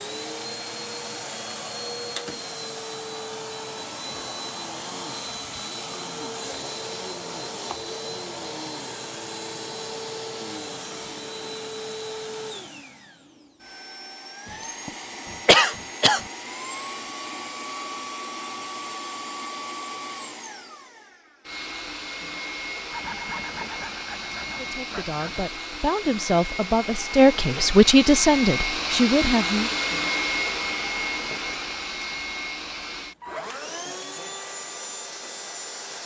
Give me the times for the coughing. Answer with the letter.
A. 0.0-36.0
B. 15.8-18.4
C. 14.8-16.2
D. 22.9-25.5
C.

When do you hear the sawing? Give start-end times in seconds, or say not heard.
22.9-25.5.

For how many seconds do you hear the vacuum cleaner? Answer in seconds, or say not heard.
36 s.